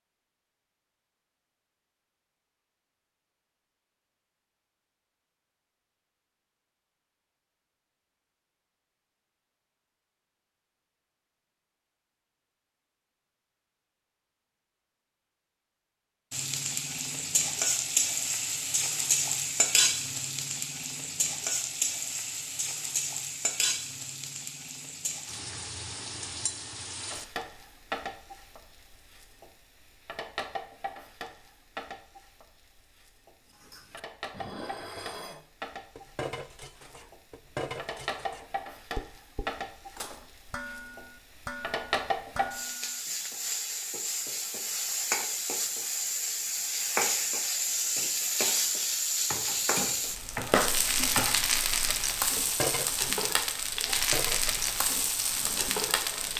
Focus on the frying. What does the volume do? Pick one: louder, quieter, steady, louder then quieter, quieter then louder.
quieter then louder.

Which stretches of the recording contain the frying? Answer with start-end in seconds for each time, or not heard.
16.3-56.3.